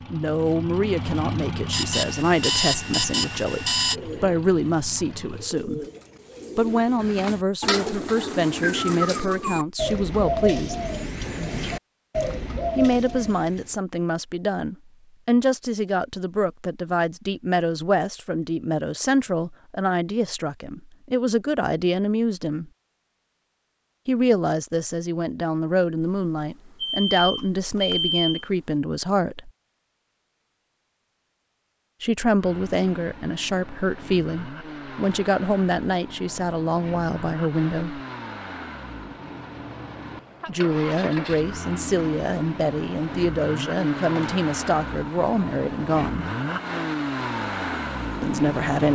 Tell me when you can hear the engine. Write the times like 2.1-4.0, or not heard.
0.0-5.5, 32.4-48.9.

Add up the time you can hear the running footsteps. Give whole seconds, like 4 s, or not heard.
not heard.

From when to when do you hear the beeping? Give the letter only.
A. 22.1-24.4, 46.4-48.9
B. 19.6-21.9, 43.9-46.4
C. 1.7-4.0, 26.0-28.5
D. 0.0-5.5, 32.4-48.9
C.